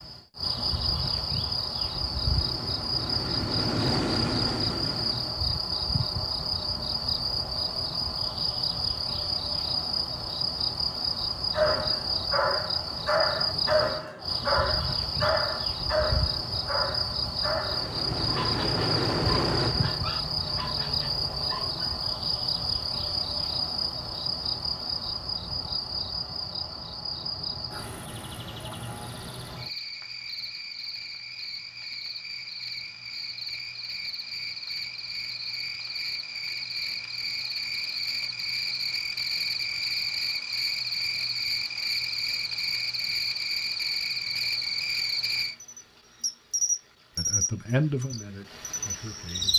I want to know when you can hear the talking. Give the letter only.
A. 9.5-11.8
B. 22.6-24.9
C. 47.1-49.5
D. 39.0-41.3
C.